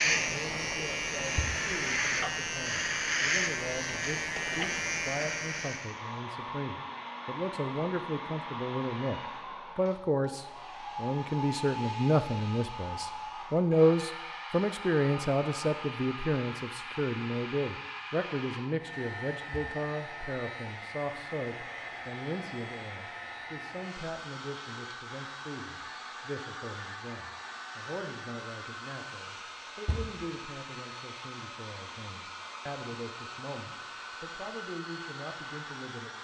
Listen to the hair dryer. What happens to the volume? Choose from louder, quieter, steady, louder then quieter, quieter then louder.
steady.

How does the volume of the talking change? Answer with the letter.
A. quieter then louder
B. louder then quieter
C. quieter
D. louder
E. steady
B.